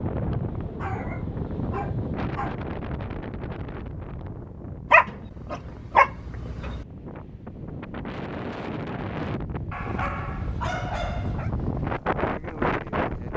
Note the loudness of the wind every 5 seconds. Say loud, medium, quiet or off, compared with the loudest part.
loud, medium, loud.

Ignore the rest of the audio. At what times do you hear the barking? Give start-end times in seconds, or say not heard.
0.8-2.6, 4.9-6.8, 9.7-11.5.